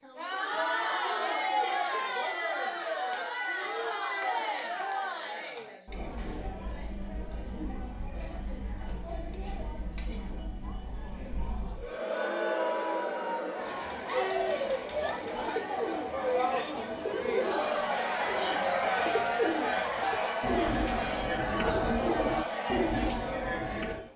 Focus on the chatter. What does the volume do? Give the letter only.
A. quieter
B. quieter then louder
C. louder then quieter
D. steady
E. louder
B.